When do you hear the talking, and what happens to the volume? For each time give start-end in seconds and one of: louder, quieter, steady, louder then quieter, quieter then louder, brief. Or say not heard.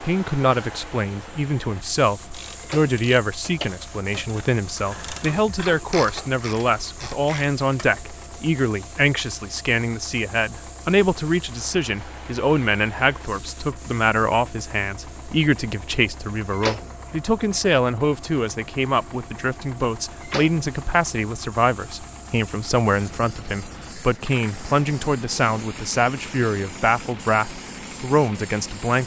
0.0-29.0 steady.